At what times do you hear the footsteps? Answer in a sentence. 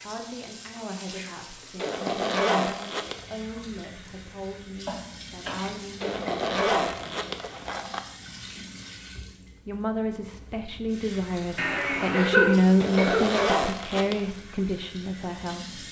You can't hear the footsteps here.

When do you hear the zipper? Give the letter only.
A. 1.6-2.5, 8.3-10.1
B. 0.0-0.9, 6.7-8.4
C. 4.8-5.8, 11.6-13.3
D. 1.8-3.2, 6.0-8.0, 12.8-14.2
D.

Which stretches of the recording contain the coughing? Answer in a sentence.
The coughing can be heard from 4.8 to 5.8 s and from 11.6 to 13.3 s.